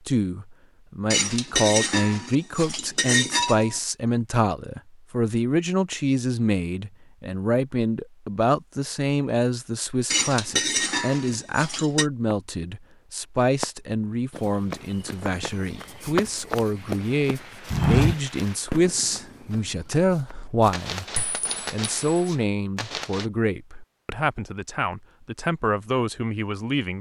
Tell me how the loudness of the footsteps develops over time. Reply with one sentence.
The volume of the footsteps goes up, then down.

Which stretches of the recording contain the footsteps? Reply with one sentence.
The footsteps can be heard from 14.3 to 20.9 s.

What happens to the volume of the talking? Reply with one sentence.
The volume of the talking stays about the same.